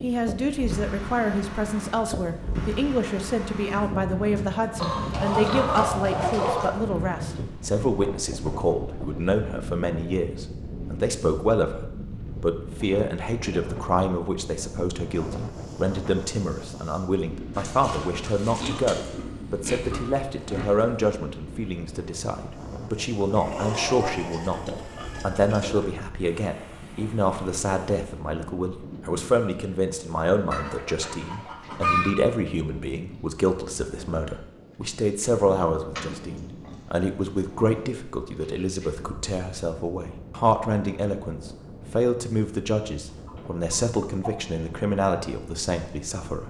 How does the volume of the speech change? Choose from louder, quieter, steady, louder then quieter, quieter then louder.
steady.